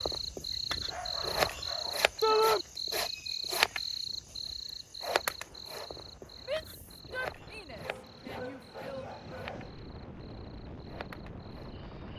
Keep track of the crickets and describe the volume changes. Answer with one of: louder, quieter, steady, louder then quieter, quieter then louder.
quieter.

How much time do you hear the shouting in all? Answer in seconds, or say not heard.
3 s.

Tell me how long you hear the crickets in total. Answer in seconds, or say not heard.
12 s.